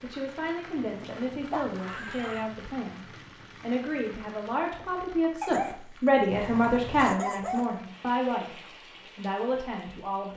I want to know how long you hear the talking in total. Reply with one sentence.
You can hear the talking for 10 seconds altogether.